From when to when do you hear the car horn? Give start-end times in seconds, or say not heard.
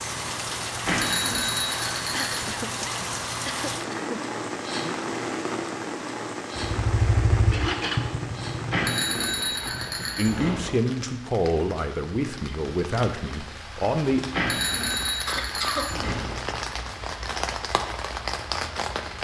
not heard.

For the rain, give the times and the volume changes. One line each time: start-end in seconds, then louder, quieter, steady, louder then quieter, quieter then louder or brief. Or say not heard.
0.0-19.1 quieter then louder.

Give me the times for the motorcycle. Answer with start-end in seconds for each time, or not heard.
6.5-10.2.